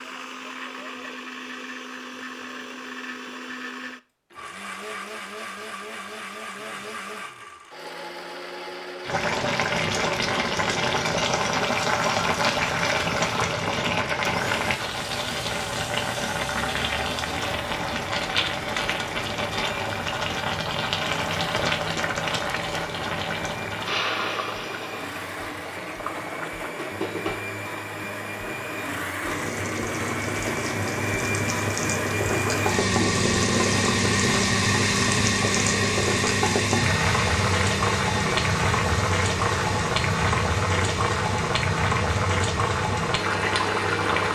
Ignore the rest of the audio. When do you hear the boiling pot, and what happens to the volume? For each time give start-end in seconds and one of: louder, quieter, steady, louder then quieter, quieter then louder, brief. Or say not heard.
9.1-44.3 quieter then louder.